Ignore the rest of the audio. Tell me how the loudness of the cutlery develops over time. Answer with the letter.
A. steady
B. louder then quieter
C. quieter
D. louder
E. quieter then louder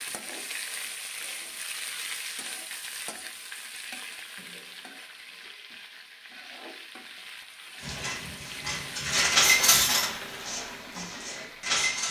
B.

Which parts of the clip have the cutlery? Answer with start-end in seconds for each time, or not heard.
7.8-12.0.